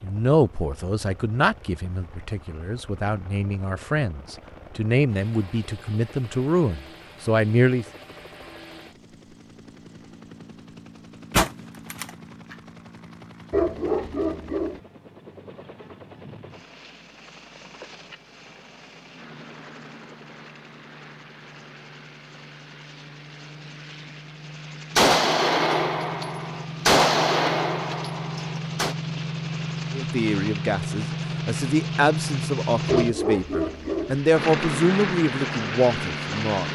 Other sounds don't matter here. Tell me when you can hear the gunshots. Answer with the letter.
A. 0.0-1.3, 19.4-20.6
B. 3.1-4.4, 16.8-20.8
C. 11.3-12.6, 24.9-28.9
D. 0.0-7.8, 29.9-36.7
C.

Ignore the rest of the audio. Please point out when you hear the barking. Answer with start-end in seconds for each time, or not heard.
13.5-14.8, 32.9-34.1.